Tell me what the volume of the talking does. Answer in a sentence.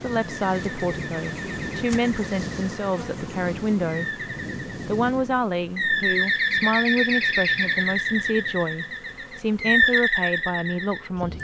The loudness of the talking stays about the same.